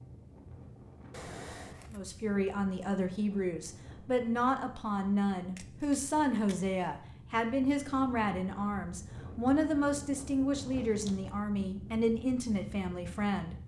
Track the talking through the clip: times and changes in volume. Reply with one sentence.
The talking can be heard from 1.9 to 13.6 s, at a steady volume.